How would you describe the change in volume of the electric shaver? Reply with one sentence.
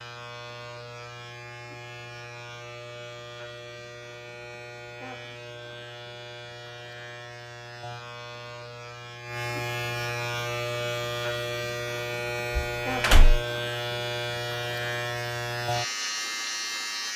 The loudness of the electric shaver goes up.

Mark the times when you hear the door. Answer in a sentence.
The door can be heard from 12.6 to 13.4 s.